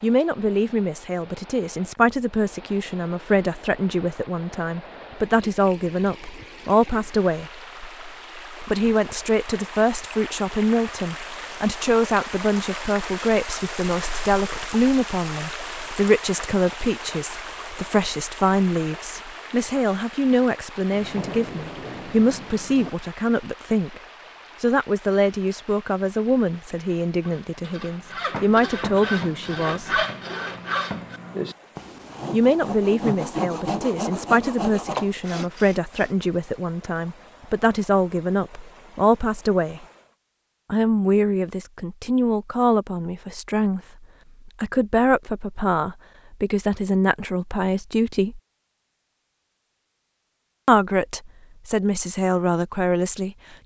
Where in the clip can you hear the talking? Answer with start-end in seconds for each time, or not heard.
0.0-7.5, 8.7-24.0, 24.6-30.0, 32.3-39.9, 40.7-48.4, 50.6-53.4.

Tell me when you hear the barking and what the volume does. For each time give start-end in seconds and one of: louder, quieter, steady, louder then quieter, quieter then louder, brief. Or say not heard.
not heard.